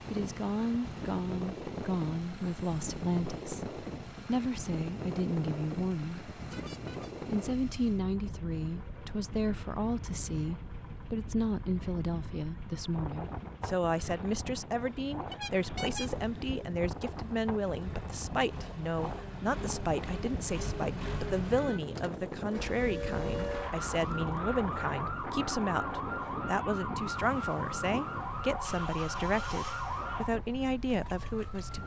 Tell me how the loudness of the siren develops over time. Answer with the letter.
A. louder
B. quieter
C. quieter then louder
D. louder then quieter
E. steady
E.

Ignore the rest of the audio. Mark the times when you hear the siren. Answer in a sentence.
You can hear the siren from 22.6 to 31.8 s.